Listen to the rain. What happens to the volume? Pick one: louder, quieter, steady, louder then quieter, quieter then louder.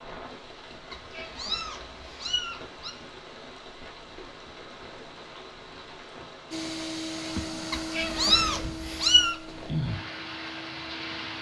louder.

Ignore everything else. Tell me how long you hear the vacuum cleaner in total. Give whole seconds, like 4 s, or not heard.
5 s.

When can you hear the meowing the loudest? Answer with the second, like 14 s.
9 s.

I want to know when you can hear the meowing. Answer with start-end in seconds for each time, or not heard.
0.9-2.9, 7.7-9.3.